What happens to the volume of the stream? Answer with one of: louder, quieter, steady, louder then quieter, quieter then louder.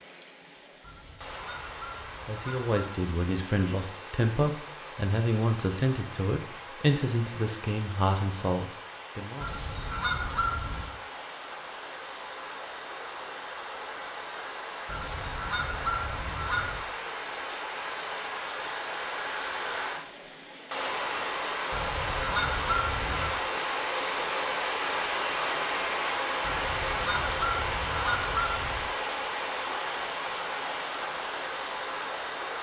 louder.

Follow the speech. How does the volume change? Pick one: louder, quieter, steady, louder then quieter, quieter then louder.
steady.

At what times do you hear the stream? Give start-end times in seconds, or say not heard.
0.0-32.5.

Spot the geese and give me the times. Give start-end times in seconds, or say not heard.
0.8-3.0, 9.4-10.9, 14.8-16.9, 21.7-23.4, 26.4-28.9.